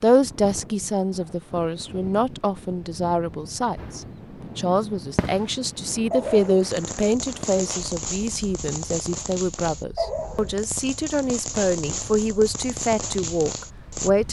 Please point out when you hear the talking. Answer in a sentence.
You can hear the talking from 0.0 to 14.2 s.